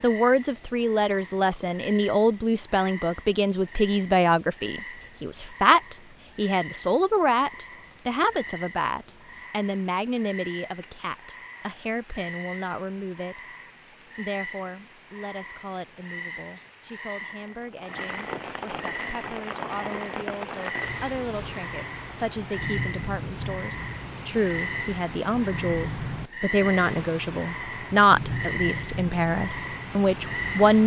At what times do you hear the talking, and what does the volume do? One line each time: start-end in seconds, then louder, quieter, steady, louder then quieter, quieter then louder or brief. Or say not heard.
0.0-13.6 quieter
14.2-30.8 louder.